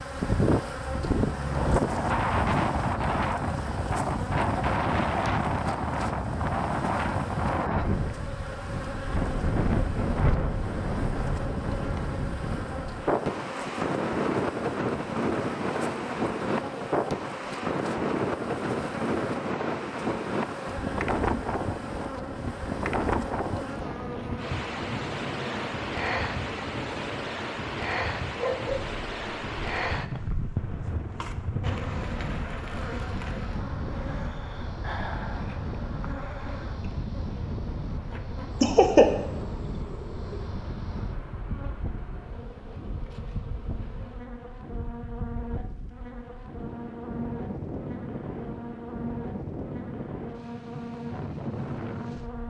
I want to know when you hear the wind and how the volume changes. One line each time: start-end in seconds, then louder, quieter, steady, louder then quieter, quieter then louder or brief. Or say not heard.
0.0-52.4 quieter.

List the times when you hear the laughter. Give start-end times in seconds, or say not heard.
38.6-39.0.